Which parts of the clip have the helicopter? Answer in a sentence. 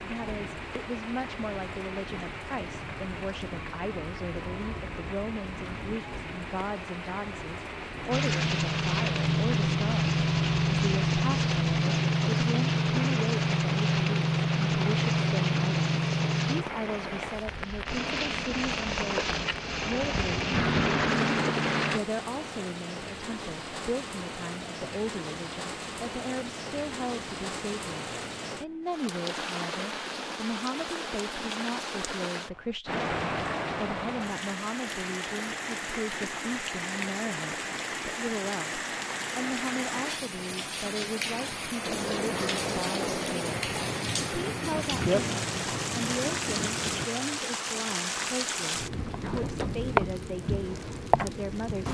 You can hear the helicopter from 8.1 to 22.0 s and from 41.8 to 47.0 s.